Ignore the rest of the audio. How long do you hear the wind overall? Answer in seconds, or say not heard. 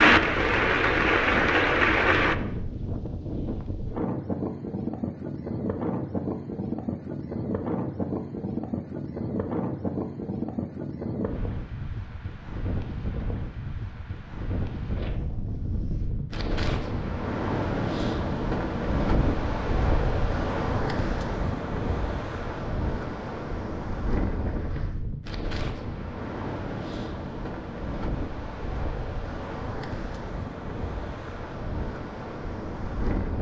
33 s.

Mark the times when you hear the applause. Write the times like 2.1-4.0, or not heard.
0.0-2.4.